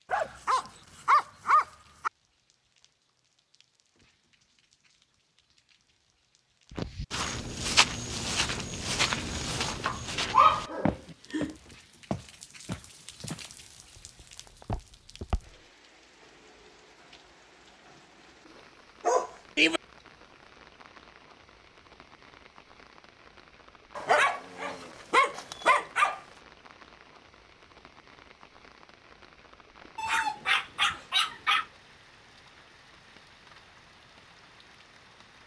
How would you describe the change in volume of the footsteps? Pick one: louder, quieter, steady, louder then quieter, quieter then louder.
quieter.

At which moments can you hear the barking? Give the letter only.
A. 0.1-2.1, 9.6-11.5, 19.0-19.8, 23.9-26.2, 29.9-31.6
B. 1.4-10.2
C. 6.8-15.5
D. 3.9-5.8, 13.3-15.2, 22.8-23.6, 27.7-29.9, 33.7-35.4
A.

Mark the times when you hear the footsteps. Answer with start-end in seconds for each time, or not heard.
6.8-15.5.